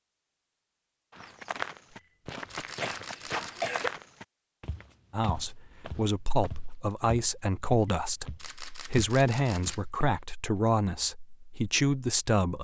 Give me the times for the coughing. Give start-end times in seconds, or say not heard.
2.8-3.9.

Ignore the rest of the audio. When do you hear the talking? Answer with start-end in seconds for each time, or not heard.
5.1-12.5.